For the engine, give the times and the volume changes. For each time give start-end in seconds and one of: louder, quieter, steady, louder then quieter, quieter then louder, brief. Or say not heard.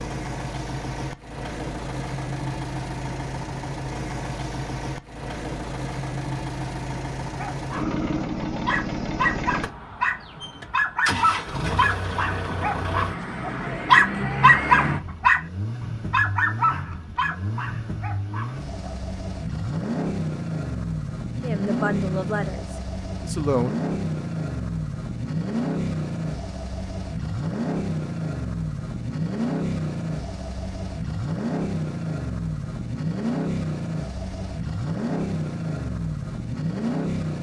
0.0-37.3 steady.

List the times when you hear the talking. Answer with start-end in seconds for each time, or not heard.
21.4-23.9.